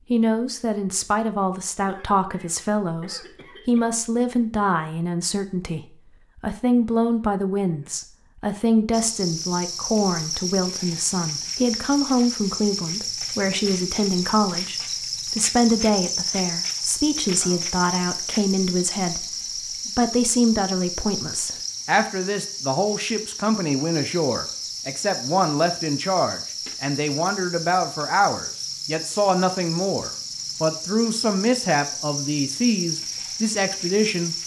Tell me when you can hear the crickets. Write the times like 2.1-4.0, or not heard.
8.9-34.4.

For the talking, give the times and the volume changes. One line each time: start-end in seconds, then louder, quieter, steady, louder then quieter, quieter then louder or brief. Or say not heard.
0.1-34.4 steady.